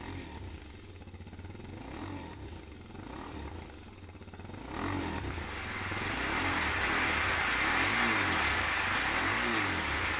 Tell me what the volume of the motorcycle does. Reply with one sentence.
The volume of the motorcycle goes up.